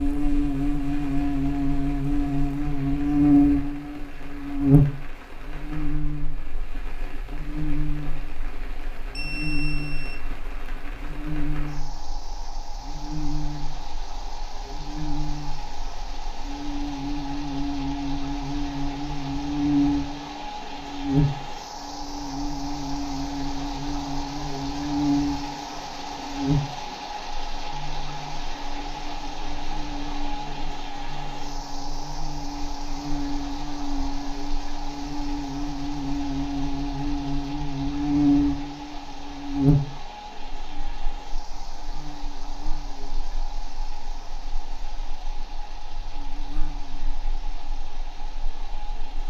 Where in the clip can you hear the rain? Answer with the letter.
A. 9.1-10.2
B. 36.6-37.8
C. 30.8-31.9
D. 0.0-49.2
D.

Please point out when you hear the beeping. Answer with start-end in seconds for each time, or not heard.
9.1-10.2.